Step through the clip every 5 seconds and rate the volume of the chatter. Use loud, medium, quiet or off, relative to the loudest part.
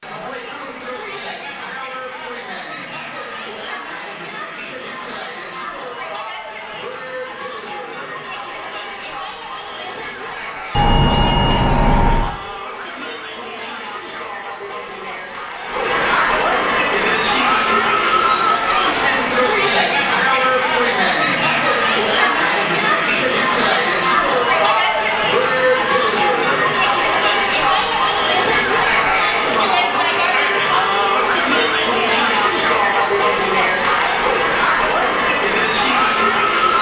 quiet, quiet, quiet, loud, loud, loud, loud, loud.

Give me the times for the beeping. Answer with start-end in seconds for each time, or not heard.
10.7-12.3.